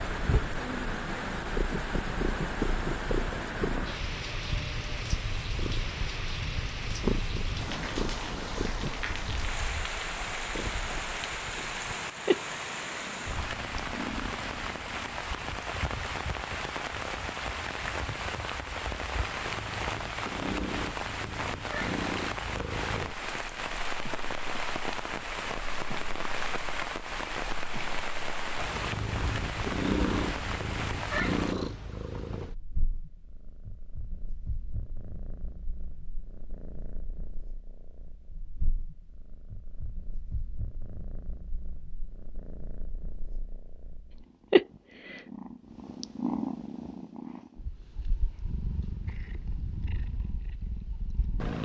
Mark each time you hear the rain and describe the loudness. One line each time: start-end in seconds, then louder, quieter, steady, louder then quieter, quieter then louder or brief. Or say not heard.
0.0-31.6 steady.